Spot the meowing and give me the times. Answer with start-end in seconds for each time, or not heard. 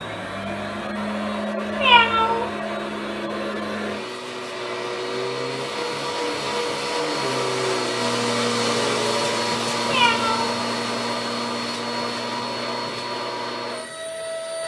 1.8-2.5, 9.8-10.6.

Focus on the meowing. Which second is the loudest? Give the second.
2 s.